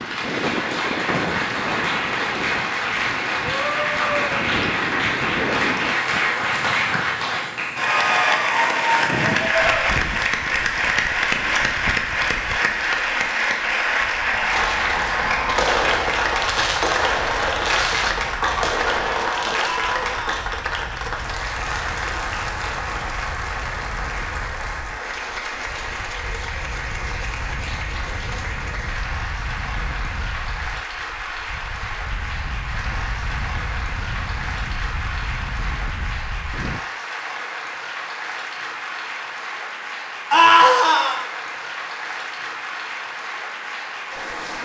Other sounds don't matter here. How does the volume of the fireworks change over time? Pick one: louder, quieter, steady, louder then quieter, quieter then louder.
steady.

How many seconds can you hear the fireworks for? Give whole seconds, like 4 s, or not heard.
6 s.